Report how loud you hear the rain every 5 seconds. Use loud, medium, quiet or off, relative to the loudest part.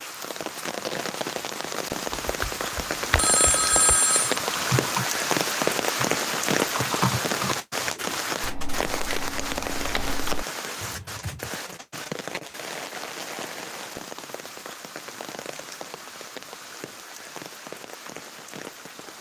loud, loud, medium, quiet.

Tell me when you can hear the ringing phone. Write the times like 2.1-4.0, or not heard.
3.1-4.4.